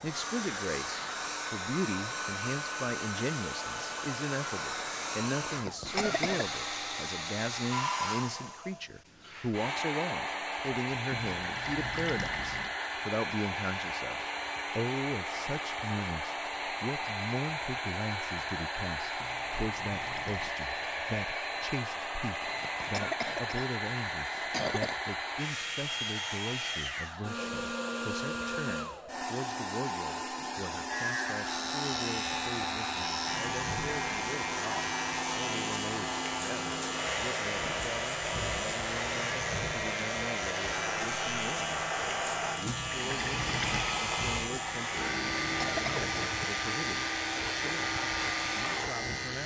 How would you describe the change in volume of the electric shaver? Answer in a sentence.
The volume of the electric shaver stays about the same.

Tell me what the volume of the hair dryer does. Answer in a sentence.
The loudness of the hair dryer stays about the same.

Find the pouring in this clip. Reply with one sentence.
The pouring can be heard from 11.1 to 12.8 s, from 19.2 to 20.6 s and from 42.6 to 44.1 s.